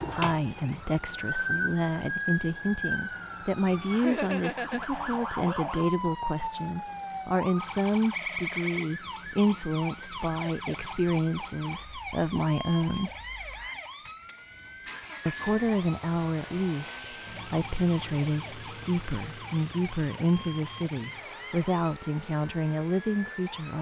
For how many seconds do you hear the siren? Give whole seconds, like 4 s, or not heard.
24 s.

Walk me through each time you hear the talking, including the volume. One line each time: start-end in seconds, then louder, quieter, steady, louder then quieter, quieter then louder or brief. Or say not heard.
0.0-13.1 steady
15.2-23.7 steady.